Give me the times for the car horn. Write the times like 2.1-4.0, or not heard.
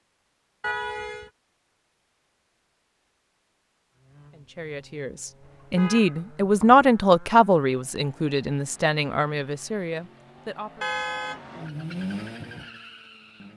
0.6-1.3, 5.5-6.8, 10.8-11.8.